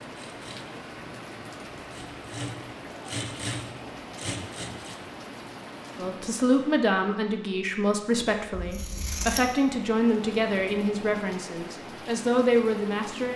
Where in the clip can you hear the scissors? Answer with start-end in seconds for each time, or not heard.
8.5-9.4.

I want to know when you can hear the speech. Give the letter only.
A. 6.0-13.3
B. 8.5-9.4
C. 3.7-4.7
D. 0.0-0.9
A.